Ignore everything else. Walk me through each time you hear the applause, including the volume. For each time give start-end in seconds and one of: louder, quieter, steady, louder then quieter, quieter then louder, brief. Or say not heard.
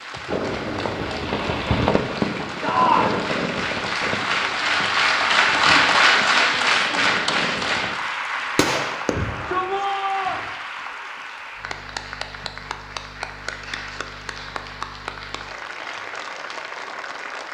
0.0-17.5 louder then quieter.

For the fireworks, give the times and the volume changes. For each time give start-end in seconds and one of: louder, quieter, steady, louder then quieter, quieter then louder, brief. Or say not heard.
0.2-9.8 quieter then louder.